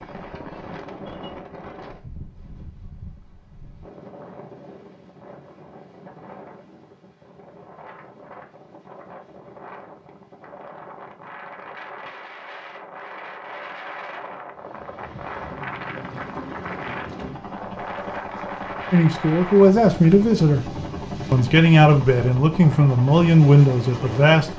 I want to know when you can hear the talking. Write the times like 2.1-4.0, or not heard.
18.9-20.7, 21.3-24.5.